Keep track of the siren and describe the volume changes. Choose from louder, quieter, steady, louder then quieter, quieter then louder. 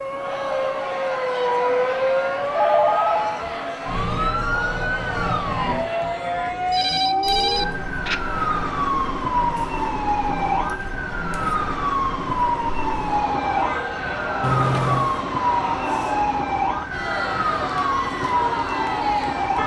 steady.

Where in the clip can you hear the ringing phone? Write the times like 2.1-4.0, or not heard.
2.5-3.2, 6.7-8.2, 14.4-15.1.